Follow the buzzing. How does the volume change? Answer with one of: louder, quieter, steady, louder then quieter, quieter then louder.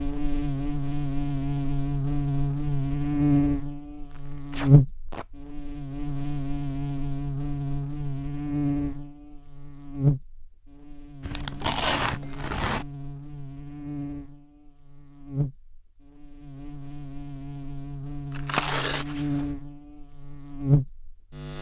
quieter then louder.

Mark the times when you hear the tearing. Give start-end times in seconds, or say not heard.
4.1-5.2, 11.2-12.8, 18.3-19.4.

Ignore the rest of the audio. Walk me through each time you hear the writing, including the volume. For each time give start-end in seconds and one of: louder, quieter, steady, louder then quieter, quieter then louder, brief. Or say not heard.
not heard.